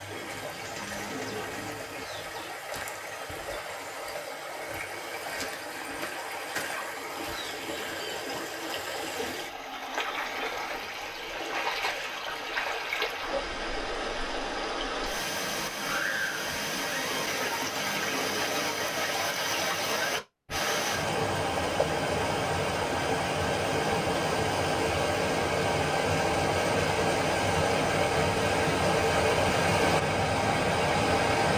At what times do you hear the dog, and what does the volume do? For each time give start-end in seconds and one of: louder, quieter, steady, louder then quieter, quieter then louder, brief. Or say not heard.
not heard.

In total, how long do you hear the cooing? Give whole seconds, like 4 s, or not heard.
4 s.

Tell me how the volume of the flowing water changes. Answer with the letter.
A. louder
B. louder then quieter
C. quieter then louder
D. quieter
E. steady
A.